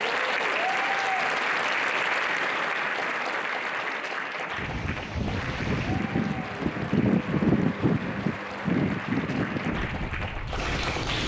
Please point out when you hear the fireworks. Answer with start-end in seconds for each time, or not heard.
not heard.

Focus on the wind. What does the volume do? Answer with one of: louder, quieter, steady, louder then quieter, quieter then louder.
louder then quieter.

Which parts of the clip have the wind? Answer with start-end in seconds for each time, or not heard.
4.5-11.2.